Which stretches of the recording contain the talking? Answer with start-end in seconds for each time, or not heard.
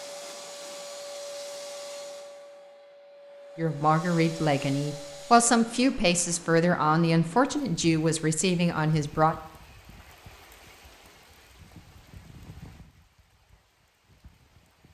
3.5-9.3.